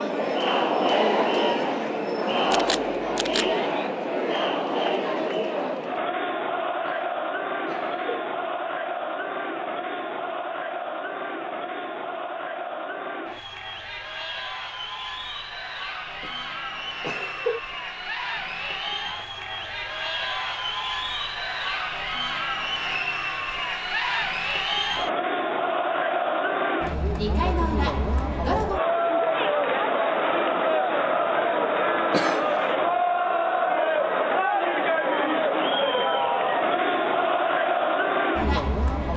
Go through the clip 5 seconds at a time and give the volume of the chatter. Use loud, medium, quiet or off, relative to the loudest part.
loud, medium, medium, medium, medium, loud, loud, loud.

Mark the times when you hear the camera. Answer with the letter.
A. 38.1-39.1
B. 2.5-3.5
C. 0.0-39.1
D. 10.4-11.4
B.